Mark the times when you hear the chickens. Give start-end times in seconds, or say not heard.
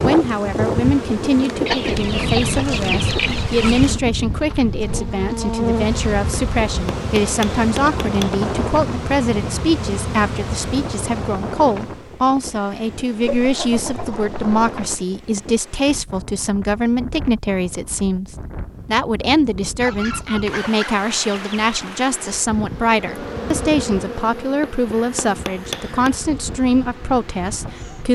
1.6-4.0, 13.2-15.0, 19.8-21.8.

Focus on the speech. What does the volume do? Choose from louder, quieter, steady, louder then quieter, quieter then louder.
steady.